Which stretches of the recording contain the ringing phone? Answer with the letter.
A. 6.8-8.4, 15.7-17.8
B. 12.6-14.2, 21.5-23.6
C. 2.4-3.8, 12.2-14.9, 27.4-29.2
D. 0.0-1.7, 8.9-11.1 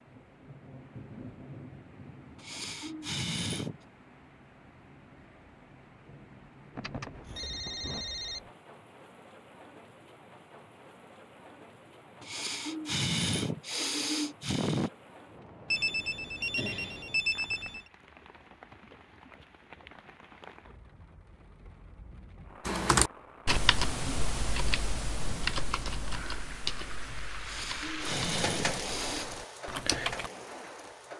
A.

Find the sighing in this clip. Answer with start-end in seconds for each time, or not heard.
2.4-3.8, 12.2-14.9, 27.4-29.2.